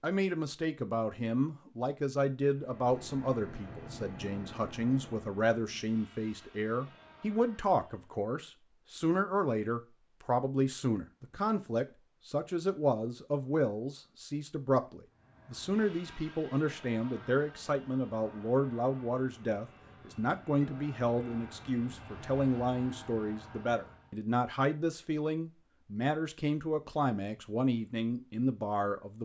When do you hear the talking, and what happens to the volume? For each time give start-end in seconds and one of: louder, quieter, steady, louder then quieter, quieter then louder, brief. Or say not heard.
0.0-29.2 steady.